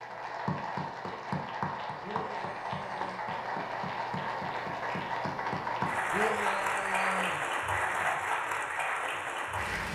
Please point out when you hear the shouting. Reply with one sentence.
The shouting can be heard from 2.0 to 3.2 s and from 6.1 to 7.4 s.